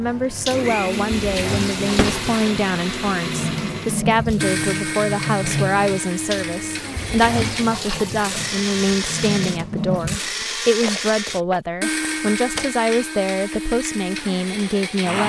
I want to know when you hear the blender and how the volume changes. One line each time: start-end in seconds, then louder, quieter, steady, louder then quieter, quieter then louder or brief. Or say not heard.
0.0-15.2 steady.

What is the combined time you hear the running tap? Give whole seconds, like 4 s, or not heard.
10 s.